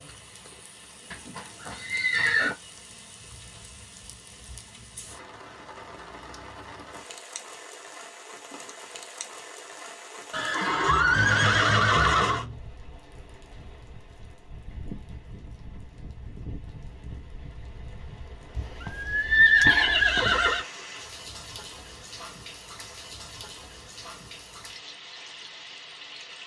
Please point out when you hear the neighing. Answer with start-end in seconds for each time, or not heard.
1.1-2.5, 10.3-12.4, 18.6-20.6.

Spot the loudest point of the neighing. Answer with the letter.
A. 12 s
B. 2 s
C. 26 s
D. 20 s
D.